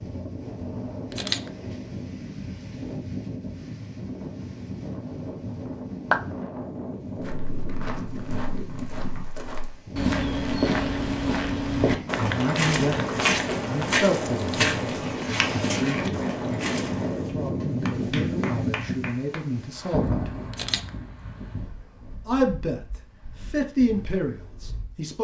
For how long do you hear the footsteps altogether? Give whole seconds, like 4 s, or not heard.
10 s.